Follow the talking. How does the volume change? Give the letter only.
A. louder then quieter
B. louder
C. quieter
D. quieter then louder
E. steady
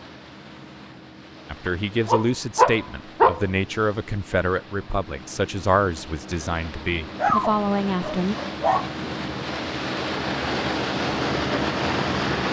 E.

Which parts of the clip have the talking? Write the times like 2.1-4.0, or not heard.
1.4-8.3.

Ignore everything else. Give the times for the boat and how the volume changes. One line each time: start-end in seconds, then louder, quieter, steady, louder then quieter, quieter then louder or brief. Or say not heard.
0.0-12.4 louder.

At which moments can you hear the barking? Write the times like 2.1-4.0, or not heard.
1.6-3.5, 7.2-8.9.